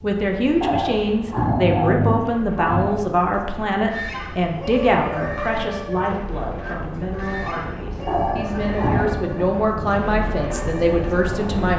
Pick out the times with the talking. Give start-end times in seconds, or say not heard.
0.0-11.7.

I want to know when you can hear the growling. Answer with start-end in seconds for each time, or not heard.
0.6-3.0, 8.1-9.1.